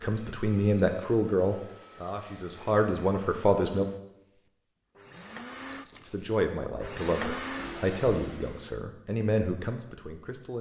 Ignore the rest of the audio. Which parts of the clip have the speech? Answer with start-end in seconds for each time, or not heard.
0.0-3.9, 6.0-10.5.